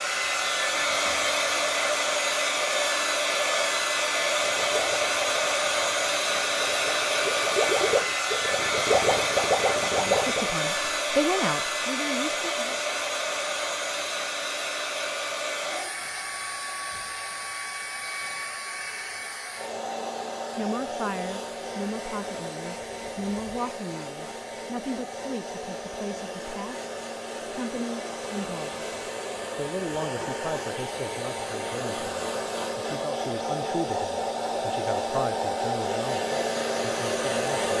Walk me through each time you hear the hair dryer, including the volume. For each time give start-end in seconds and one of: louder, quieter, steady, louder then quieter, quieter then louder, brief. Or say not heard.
0.0-37.7 quieter then louder.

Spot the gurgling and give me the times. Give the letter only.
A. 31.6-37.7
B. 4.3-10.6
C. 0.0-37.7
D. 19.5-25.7
B.